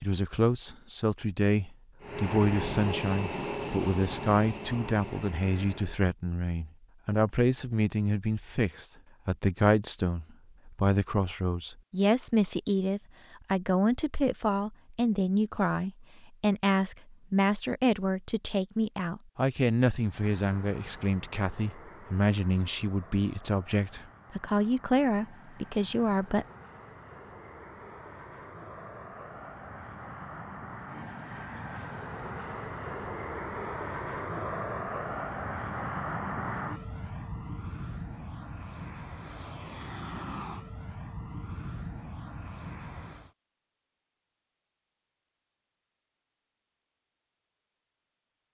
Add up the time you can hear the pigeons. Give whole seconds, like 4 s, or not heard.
not heard.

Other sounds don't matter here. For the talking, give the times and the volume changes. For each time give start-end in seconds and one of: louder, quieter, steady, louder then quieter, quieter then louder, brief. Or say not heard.
0.0-26.4 steady.